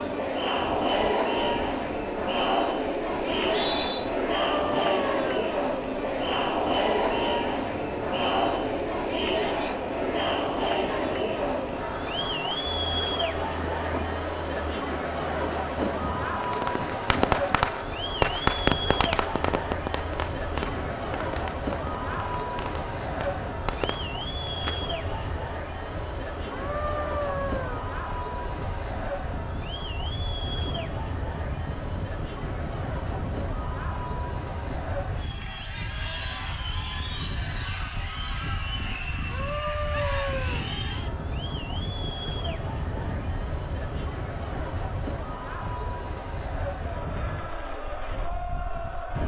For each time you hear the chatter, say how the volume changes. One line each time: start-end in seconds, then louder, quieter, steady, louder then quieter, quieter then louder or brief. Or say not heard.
0.0-49.2 quieter.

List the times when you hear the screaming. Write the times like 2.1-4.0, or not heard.
4.4-5.5, 26.5-27.9, 39.3-40.7.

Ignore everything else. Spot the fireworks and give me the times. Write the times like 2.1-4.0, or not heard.
16.4-25.5.